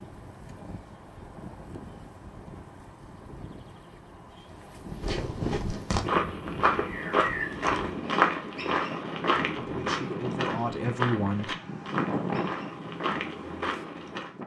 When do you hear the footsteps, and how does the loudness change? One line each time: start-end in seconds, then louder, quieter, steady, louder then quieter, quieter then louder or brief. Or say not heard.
5.0-14.3 quieter.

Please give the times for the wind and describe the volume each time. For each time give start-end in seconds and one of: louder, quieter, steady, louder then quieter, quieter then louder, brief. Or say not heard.
0.0-14.4 louder.